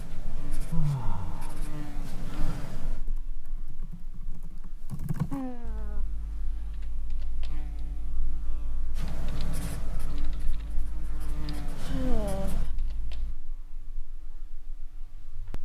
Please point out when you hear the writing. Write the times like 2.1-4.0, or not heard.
0.0-3.0, 8.9-12.7.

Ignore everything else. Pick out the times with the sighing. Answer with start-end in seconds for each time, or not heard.
0.7-1.5, 5.3-6.0, 11.8-12.7.